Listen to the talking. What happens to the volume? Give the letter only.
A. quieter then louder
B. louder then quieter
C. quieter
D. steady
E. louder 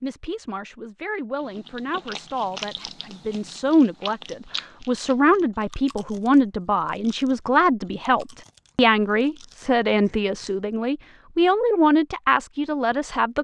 E.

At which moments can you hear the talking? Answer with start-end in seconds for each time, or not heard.
0.0-13.3.